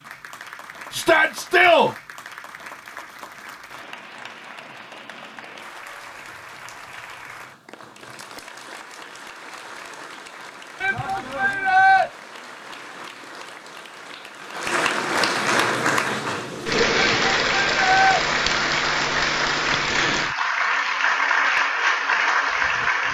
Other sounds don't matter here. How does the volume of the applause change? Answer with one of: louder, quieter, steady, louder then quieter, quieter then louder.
louder.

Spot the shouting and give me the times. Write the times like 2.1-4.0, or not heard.
0.9-1.9, 10.8-12.1, 16.9-18.2.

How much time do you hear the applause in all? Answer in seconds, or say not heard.
23 s.